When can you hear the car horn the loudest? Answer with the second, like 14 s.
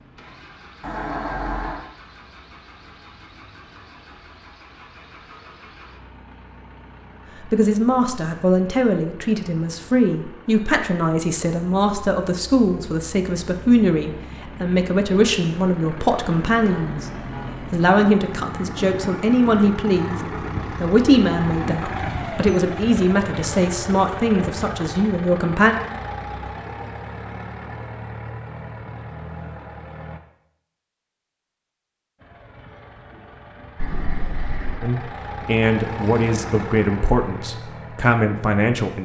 1 s.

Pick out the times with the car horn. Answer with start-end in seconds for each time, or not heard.
0.8-1.9, 16.6-17.6, 33.8-34.9.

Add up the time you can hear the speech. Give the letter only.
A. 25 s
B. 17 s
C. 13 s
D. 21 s
D.